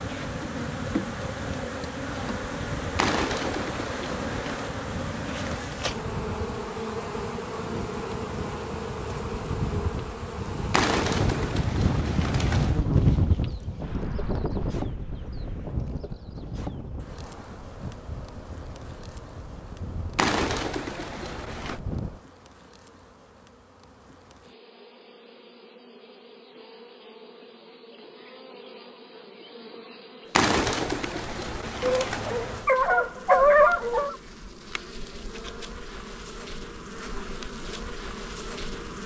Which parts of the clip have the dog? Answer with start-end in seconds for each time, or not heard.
31.8-34.1.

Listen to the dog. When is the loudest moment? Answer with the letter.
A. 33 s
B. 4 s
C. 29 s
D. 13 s
A.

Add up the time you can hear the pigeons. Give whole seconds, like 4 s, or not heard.
8 s.